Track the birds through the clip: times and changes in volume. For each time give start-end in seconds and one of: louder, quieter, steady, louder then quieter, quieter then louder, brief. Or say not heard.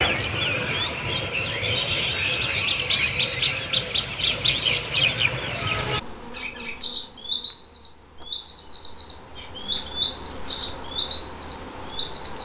0.0-12.4 steady.